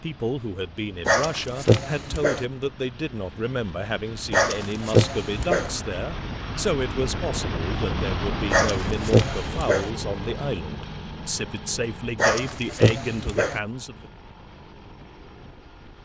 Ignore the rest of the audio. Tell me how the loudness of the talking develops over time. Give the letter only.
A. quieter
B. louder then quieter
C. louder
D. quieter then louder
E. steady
E.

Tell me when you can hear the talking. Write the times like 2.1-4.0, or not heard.
0.0-14.1.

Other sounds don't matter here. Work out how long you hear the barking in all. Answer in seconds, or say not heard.
6 s.